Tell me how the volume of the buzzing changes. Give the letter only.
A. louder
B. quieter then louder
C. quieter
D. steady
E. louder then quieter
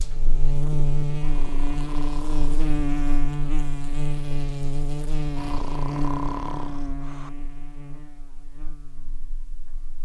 C.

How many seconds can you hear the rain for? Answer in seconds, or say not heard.
not heard.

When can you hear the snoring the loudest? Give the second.
6 s.